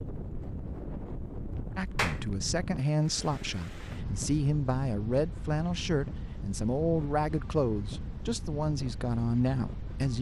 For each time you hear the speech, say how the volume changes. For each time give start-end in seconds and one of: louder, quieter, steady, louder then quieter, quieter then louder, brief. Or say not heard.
1.8-10.1 steady.